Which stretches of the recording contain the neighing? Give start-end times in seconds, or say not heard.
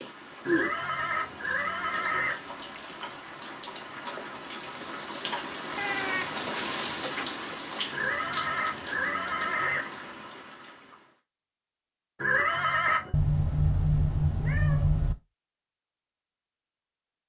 0.5-2.4, 7.9-9.8, 12.2-13.2.